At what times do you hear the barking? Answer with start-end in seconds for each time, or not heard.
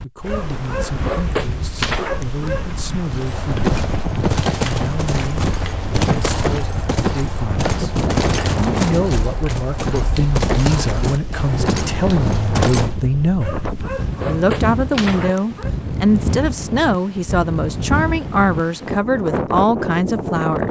0.2-2.8, 13.4-15.7.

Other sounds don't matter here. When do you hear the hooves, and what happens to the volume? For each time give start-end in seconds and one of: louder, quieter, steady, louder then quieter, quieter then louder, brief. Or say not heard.
3.0-13.1 steady.